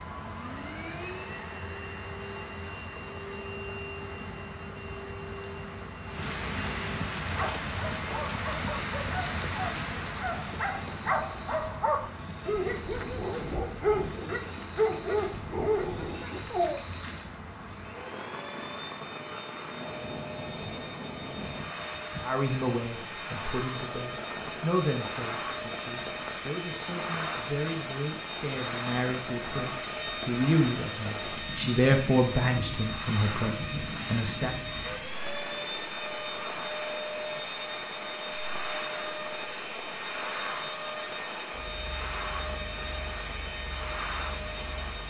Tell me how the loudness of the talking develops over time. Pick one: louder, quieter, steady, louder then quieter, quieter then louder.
quieter then louder.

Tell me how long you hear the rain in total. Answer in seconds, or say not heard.
45 s.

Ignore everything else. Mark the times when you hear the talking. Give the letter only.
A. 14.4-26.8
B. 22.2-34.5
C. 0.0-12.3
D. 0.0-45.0
B.